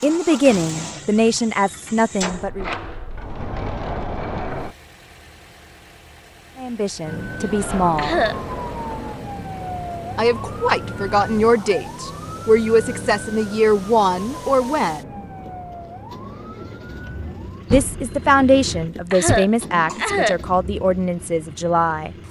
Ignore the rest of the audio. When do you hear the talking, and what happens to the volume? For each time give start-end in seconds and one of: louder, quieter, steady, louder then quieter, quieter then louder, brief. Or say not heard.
0.0-2.6 brief
6.5-8.2 brief
10.2-15.2 steady
17.7-22.1 quieter.